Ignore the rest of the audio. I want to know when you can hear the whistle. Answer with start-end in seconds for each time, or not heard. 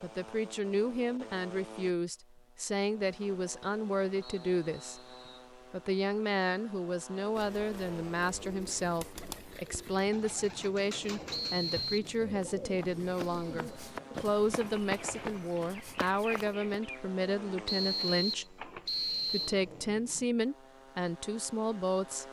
4.2-5.5, 11.3-12.1, 17.6-19.6.